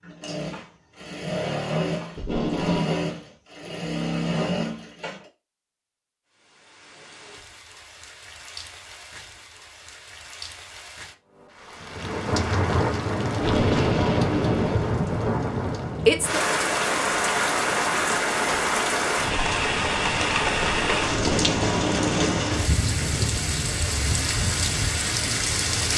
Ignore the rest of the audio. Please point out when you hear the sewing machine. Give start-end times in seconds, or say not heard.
0.0-5.2.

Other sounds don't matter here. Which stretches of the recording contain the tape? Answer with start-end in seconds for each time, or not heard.
2.1-2.9, 13.4-14.9, 21.1-22.4.